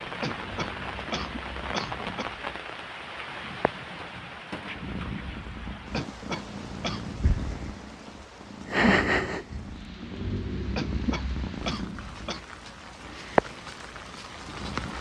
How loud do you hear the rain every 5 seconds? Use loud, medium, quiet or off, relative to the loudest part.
loud, medium, medium.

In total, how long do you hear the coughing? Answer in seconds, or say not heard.
5 s.